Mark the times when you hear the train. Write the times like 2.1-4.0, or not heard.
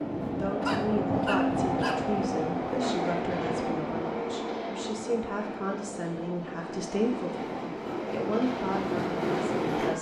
0.0-9.9.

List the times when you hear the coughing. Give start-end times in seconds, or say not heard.
0.4-1.9.